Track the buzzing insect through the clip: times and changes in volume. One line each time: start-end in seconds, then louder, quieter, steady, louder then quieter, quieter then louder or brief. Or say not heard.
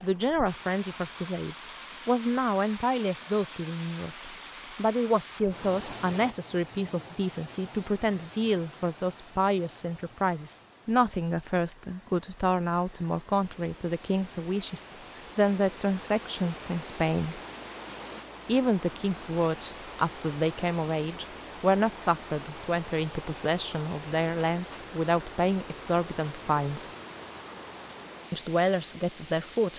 not heard.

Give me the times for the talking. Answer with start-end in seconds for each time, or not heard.
0.0-17.4, 18.4-26.9, 28.3-29.7.